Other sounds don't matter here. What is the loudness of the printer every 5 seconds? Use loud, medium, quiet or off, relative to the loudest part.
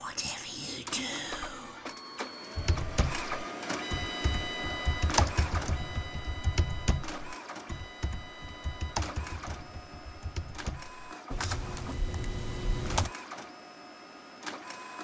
loud, loud, medium.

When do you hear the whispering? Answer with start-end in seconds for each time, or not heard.
0.0-2.2.